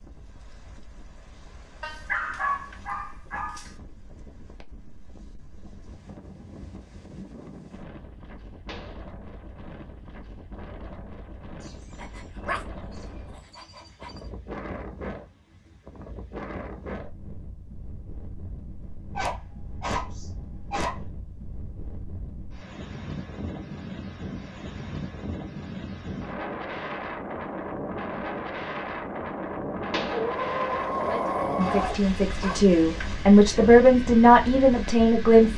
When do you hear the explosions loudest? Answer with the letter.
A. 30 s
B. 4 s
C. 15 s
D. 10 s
A.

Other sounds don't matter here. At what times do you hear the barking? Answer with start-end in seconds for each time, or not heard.
1.8-3.7, 11.7-14.1, 19.1-21.0, 30.1-32.8.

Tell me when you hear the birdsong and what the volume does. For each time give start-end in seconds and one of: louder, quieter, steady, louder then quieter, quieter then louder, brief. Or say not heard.
not heard.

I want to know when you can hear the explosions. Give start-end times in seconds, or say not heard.
8.7-9.1, 29.9-30.3.